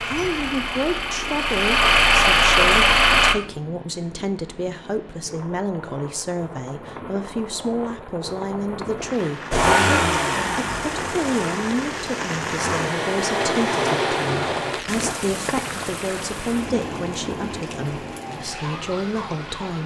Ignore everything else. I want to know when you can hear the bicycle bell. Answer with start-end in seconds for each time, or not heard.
not heard.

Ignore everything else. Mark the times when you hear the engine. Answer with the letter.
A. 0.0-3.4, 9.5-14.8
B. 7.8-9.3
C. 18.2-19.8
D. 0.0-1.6
A.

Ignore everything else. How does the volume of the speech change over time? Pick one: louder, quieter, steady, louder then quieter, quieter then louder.
steady.